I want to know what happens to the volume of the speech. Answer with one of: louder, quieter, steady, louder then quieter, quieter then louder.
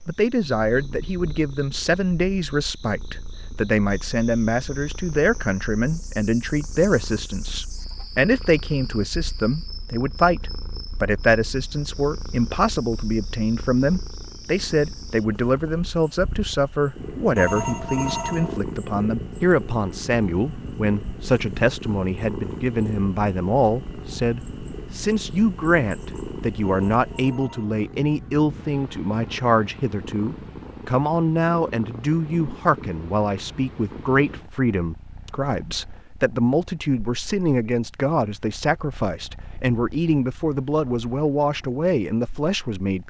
steady.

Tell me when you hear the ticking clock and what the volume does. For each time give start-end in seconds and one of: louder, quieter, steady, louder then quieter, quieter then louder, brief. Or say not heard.
not heard.